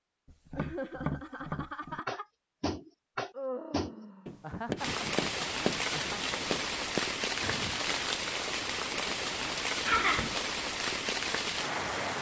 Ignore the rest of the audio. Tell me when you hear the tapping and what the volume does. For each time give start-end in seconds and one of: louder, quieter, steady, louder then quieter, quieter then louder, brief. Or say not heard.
0.2-7.0 steady.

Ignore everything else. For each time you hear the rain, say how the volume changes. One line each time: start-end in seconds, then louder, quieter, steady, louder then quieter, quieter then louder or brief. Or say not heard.
4.8-12.1 steady.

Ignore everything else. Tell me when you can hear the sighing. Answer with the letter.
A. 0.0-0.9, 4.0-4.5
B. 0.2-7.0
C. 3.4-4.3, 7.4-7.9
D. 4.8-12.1
C.